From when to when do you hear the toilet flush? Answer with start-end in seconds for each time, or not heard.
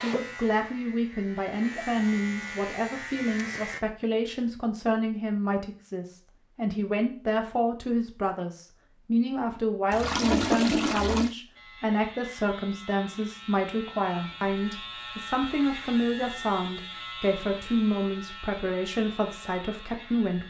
9.9-11.3.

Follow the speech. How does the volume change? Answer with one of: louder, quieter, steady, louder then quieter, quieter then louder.
steady.